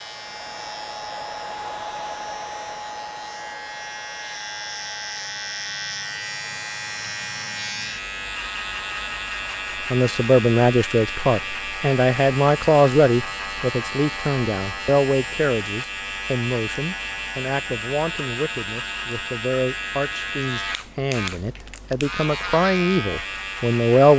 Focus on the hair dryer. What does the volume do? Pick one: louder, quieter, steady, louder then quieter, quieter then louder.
quieter.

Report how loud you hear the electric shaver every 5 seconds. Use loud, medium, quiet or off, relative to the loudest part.
medium, loud, loud, loud, loud.